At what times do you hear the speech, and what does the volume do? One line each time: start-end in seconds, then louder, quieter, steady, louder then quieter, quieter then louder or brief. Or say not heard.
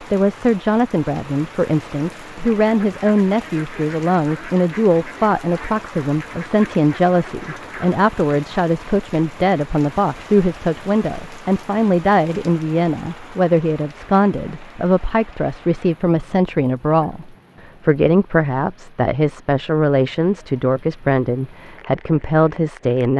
0.1-23.1 steady.